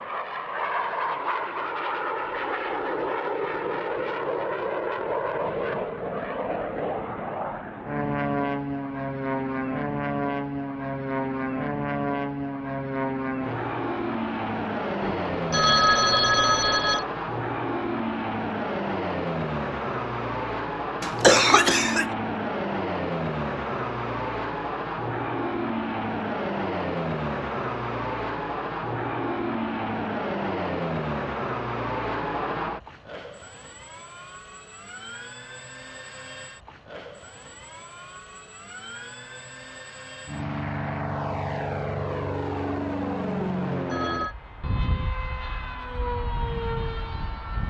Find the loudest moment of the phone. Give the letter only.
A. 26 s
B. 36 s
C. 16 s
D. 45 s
C.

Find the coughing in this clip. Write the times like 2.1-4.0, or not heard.
21.0-22.1.